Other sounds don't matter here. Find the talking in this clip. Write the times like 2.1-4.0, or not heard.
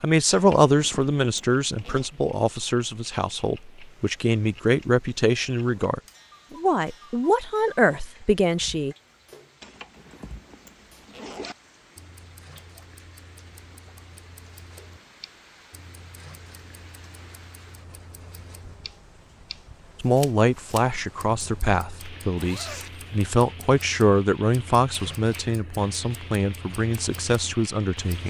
0.0-8.9, 20.0-28.2.